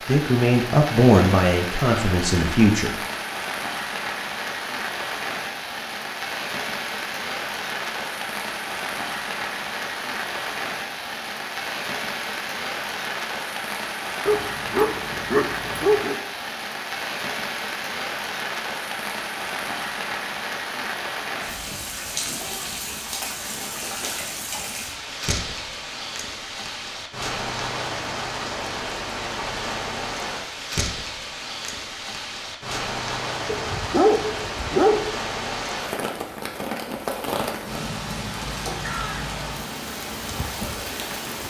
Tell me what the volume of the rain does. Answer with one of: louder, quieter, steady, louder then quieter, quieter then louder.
steady.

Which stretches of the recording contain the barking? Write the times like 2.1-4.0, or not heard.
14.2-16.2, 33.5-35.2.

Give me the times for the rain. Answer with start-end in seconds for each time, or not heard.
0.0-41.4.